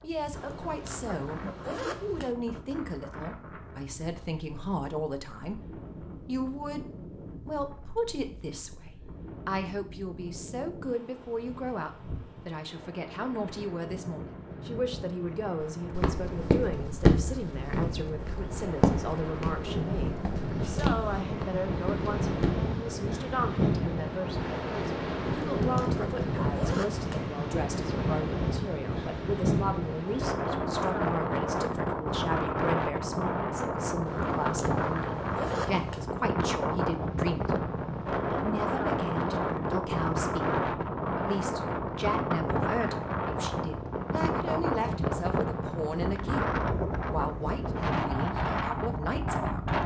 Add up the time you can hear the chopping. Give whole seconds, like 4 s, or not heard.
not heard.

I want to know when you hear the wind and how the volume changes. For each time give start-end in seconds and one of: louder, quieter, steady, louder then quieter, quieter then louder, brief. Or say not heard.
0.0-49.8 louder.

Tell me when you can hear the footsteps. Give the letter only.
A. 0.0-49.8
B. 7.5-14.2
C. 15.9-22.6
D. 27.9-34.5
C.